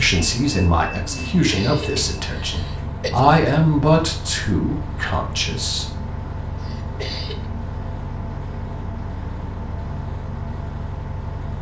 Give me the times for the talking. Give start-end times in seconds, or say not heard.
0.0-6.0.